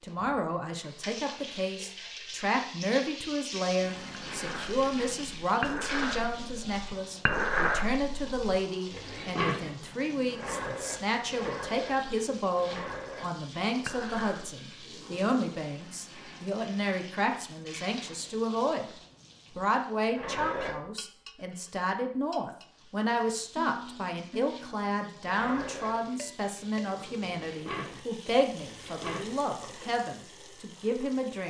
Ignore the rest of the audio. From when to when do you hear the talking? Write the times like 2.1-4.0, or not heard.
0.0-18.9, 19.6-31.4.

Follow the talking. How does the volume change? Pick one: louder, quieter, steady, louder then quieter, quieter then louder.
steady.